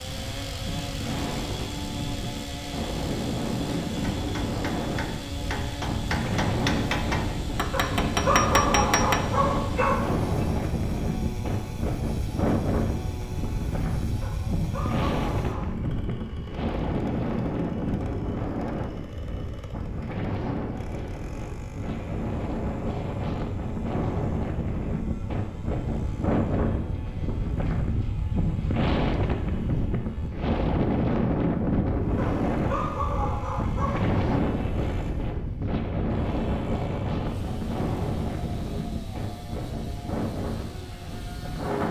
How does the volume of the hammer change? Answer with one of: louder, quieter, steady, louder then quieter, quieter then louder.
louder.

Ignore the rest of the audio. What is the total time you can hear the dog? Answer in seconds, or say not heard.
6 s.